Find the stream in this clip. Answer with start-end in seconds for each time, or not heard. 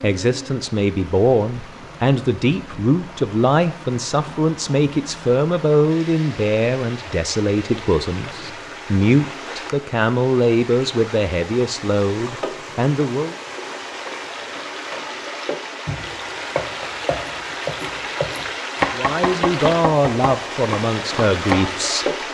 0.0-22.2.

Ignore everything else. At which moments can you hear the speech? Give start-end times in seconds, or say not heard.
0.0-13.3, 18.9-22.1.